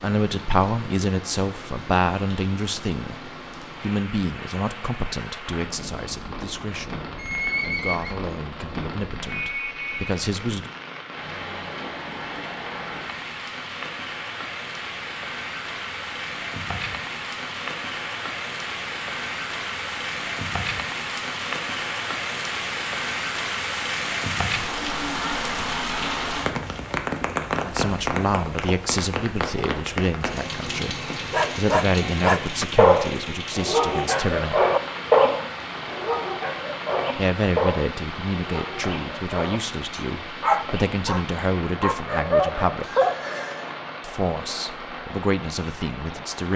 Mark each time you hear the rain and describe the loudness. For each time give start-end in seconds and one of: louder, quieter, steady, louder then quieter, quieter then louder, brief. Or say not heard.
0.0-46.5 louder then quieter.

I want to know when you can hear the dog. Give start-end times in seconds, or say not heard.
31.3-43.4.